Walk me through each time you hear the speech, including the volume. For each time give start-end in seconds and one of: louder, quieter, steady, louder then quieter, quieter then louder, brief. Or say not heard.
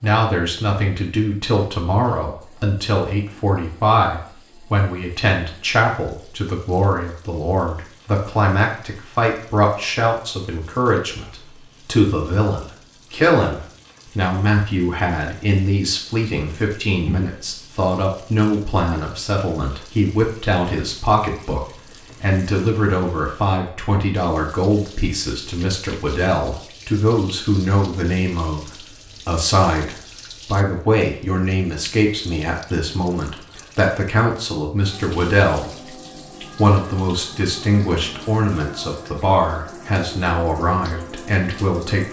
0.0-42.0 steady.